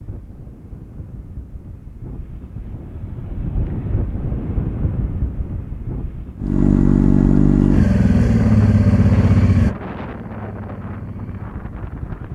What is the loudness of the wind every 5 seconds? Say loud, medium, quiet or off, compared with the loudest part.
loud, loud, medium.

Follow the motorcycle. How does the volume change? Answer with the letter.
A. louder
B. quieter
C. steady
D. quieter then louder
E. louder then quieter
B.